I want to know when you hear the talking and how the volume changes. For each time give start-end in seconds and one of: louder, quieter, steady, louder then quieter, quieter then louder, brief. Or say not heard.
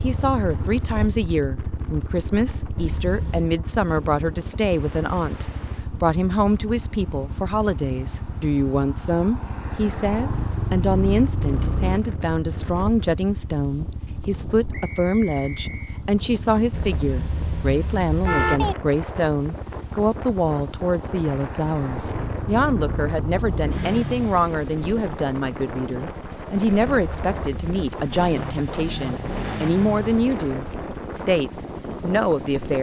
0.0-32.7 steady.